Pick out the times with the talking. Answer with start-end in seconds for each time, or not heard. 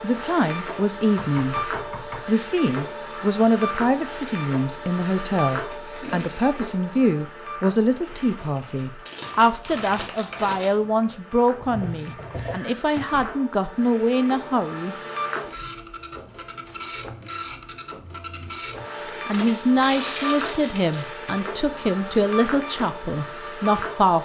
0.0-14.9, 19.2-24.2.